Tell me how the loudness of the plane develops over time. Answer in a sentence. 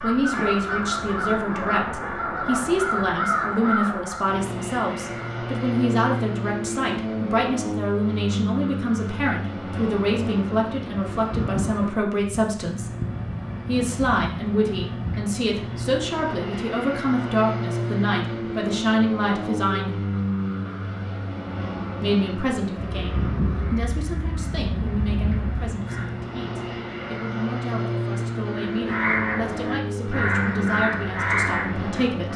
The loudness of the plane stays about the same.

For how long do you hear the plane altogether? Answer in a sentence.
You can hear the plane for 28 seconds altogether.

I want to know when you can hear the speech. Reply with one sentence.
You can hear the speech from 0.0 to 12.9 s, from 13.7 to 20.0 s and from 22.0 to 32.3 s.